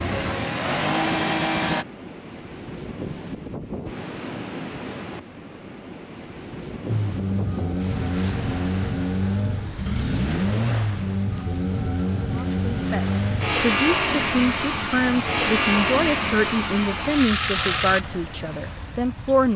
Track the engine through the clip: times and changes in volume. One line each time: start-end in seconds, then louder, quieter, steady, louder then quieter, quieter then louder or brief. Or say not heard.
0.0-1.9 brief
6.8-18.0 steady.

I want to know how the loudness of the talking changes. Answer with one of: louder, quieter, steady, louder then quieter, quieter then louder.
steady.